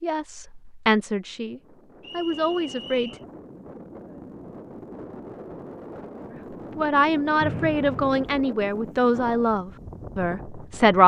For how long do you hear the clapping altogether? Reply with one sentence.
The clapping can't be heard in this clip.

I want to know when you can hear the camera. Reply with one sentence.
The camera can't be heard in this clip.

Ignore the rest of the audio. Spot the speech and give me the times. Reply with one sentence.
You can hear the speech from 0.0 to 3.1 s and from 6.8 to 11.0 s.